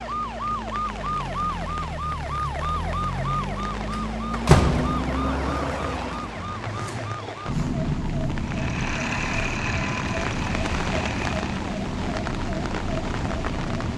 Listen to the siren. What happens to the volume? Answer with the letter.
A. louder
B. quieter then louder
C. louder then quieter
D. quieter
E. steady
E.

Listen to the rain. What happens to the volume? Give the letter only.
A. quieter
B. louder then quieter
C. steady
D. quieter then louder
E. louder
E.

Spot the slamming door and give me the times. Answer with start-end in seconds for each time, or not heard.
3.9-5.2.